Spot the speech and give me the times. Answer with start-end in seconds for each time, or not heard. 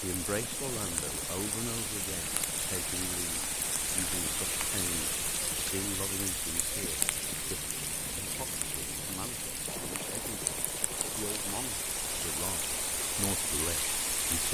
0.0-14.4.